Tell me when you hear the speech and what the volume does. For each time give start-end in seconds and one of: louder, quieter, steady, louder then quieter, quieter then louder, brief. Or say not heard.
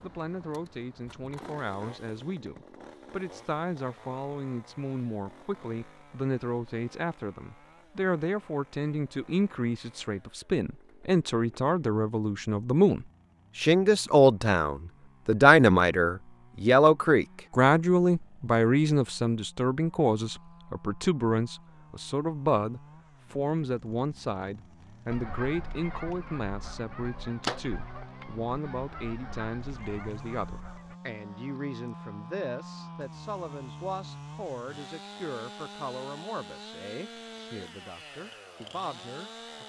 0.0-39.6 louder then quieter.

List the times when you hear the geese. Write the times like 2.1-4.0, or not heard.
25.1-30.9.